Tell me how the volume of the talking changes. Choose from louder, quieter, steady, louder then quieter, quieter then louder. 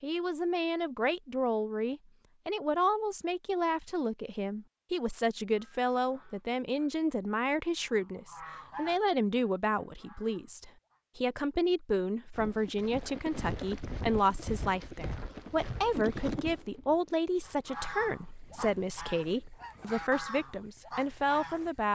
steady.